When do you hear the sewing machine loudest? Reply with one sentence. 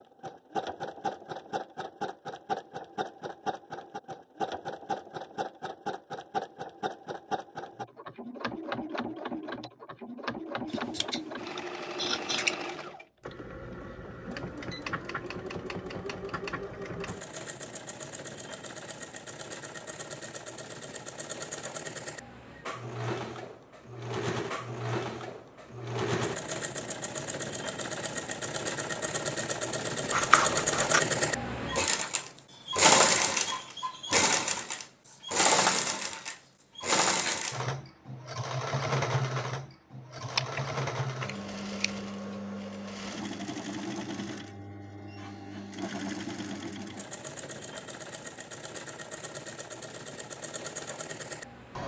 The volume of the sewing machine peaks at 33 seconds.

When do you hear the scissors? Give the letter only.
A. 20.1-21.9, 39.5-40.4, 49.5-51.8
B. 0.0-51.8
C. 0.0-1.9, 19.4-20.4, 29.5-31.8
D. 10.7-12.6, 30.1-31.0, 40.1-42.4
D.